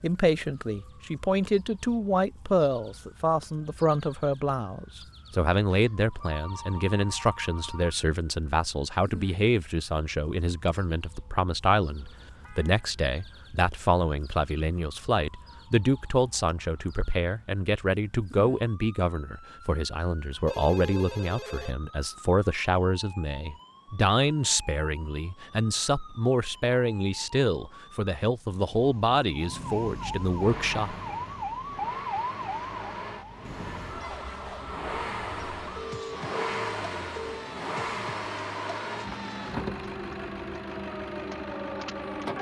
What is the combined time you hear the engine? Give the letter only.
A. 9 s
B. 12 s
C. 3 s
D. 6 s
B.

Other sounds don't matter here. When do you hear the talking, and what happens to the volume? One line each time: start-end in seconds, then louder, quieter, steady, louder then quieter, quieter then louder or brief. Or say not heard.
0.0-30.9 steady.